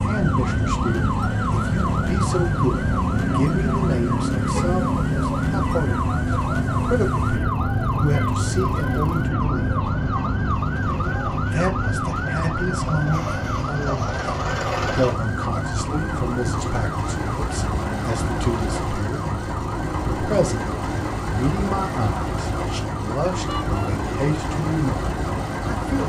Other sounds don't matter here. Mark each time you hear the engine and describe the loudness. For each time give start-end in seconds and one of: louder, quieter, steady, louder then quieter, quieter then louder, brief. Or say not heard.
0.0-26.0 louder.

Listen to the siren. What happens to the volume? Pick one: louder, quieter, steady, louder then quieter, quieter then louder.
quieter.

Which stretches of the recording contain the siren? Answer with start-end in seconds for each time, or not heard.
0.0-26.0.